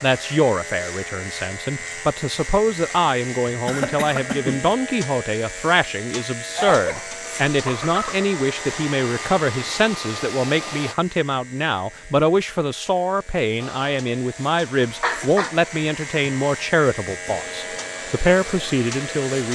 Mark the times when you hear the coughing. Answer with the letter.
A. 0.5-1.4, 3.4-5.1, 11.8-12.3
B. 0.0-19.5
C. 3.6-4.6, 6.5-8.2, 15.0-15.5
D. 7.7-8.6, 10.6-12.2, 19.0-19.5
C.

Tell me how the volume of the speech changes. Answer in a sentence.
The loudness of the speech stays about the same.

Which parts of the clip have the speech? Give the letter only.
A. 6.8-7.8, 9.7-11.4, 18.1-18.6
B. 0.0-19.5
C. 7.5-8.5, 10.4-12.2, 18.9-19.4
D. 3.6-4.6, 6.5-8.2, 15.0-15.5
B.